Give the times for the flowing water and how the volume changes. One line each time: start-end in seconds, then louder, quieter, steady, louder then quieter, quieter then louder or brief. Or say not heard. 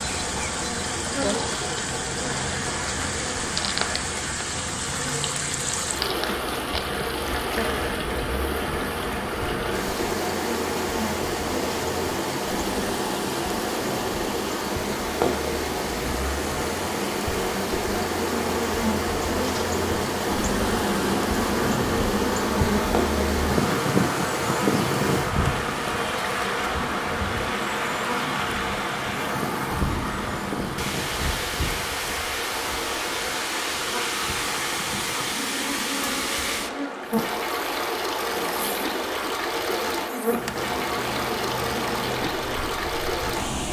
0.0-43.6 steady.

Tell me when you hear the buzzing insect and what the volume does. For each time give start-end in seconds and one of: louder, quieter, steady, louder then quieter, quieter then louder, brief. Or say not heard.
0.0-43.6 louder then quieter.